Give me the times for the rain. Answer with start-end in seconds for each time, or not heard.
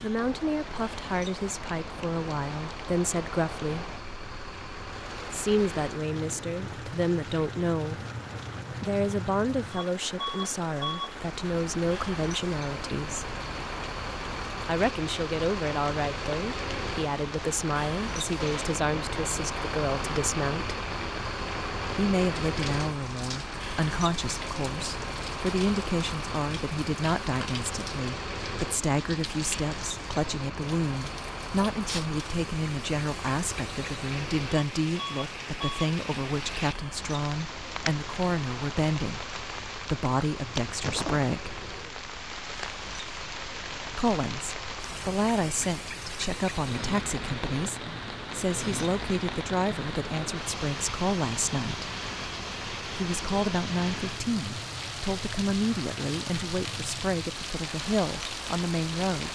0.0-59.3.